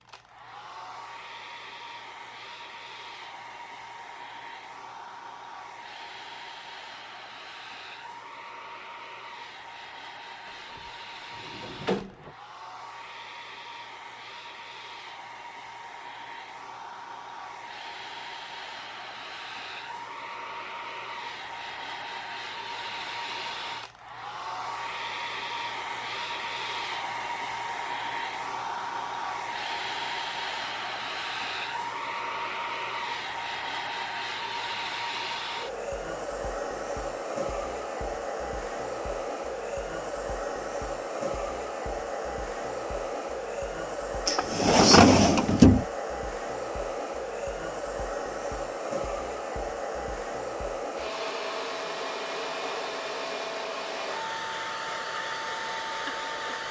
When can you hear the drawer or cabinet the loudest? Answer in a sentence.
The volume of the drawer or cabinet peaks at 45 seconds.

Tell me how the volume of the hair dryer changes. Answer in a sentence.
The volume of the hair dryer goes up.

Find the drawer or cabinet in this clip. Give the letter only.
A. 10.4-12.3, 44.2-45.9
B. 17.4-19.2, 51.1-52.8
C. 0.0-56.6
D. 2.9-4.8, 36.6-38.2
A.